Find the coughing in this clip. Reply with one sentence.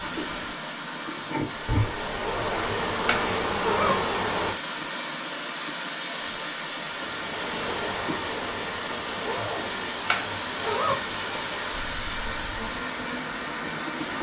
You can't hear the coughing here.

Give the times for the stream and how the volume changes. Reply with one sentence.
You can hear the stream from 0.0 to 14.1 s, at a steady volume.